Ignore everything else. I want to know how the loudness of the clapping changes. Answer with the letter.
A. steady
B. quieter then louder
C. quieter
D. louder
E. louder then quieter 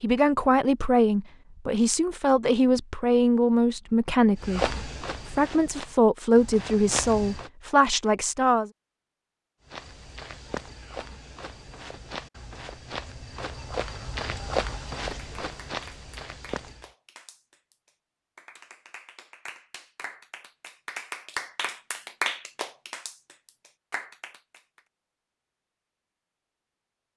E.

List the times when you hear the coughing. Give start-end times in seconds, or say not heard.
not heard.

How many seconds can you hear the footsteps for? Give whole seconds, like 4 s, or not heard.
10 s.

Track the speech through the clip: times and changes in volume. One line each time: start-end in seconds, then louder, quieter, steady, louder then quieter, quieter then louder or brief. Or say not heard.
0.0-8.7 steady.